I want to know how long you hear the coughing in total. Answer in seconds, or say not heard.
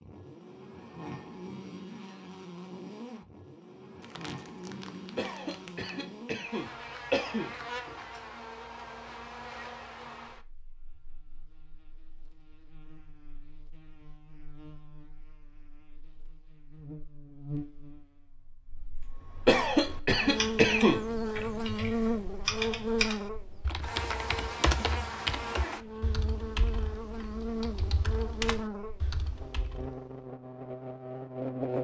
4 s.